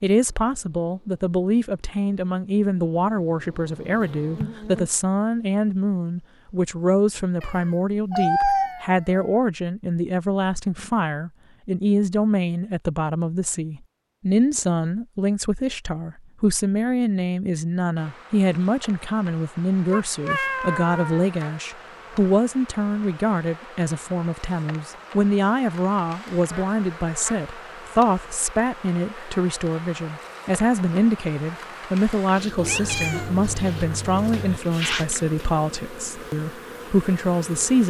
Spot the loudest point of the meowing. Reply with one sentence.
The volume of the meowing peaks at 8 seconds.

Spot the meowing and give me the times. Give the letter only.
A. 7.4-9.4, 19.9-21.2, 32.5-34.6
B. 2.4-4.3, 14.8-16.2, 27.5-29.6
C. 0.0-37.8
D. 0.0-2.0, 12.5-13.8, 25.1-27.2
A.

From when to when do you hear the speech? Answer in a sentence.
The speech can be heard from 0.0 to 37.8 s.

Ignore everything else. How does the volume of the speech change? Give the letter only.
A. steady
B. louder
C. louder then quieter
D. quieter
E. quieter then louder
A.